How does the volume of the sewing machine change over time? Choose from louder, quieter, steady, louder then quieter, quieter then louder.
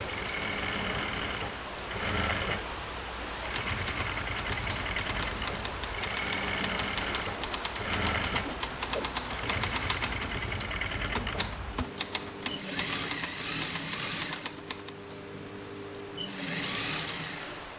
steady.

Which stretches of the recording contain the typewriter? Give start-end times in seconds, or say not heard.
3.4-14.9.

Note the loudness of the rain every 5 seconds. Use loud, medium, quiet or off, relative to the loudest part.
loud, loud, medium, medium.